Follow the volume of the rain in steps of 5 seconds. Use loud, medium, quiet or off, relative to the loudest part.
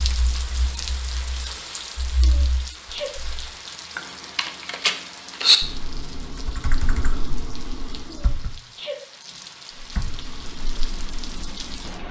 loud, medium, loud.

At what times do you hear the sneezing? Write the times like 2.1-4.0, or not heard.
2.2-3.1, 8.1-9.0.